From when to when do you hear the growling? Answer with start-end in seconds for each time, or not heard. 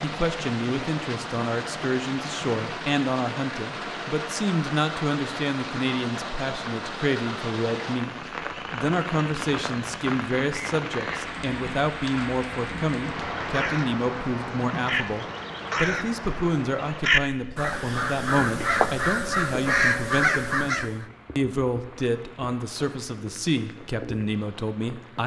not heard.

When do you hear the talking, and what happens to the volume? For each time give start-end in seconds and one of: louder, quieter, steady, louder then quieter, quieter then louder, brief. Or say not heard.
0.0-25.2 steady.